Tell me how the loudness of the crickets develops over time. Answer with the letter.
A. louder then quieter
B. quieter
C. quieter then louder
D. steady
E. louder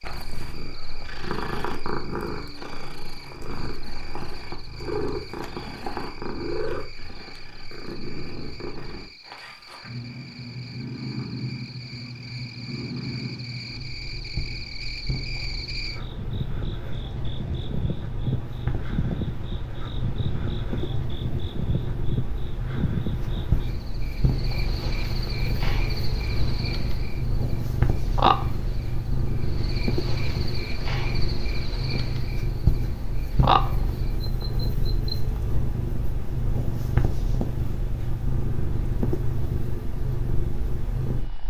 E.